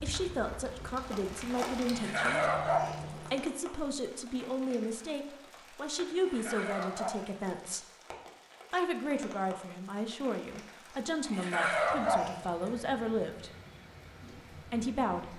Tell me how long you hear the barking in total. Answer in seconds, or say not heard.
4 s.